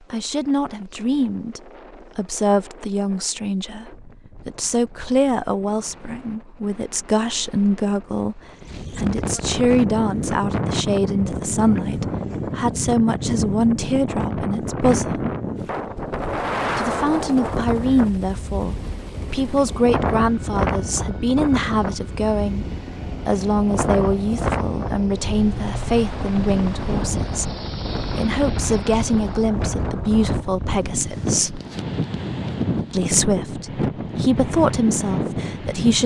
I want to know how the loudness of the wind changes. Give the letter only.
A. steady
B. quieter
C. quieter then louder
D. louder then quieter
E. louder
E.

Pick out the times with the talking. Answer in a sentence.
The talking can be heard from 0.1 to 15.3 s, from 16.8 to 31.6 s and from 32.9 to 36.0 s.